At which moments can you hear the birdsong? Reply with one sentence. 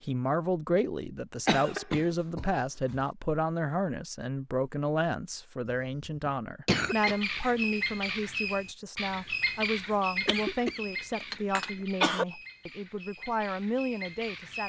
You can hear the birdsong from 6.8 to 14.6 s.